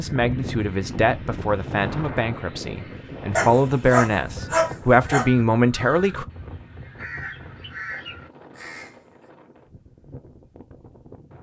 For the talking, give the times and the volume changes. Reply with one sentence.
The talking can be heard from 0.0 to 6.2 s, getting louder.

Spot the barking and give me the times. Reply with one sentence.
The barking can be heard from 3.3 to 5.2 s.